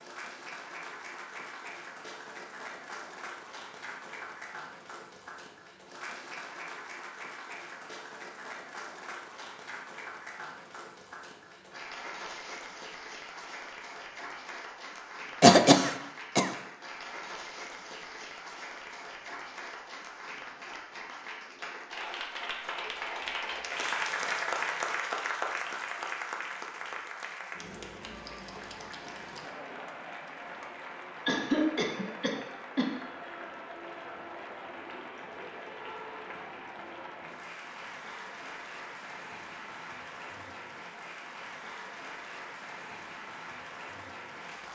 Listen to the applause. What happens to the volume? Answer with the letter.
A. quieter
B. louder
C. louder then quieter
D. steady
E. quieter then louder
C.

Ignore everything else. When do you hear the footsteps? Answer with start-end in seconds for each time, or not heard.
not heard.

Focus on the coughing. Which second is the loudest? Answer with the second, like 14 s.
16 s.